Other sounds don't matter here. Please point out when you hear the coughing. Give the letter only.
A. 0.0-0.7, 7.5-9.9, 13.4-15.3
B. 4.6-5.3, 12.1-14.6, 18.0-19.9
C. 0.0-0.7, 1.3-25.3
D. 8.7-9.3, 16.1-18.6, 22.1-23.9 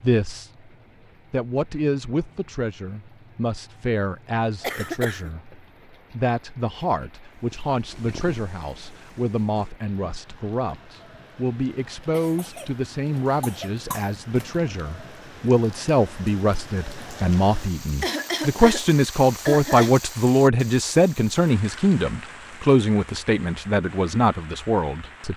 B.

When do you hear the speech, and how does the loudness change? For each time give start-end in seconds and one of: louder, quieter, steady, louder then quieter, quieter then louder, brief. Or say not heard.
0.0-0.7 brief
1.3-25.3 louder.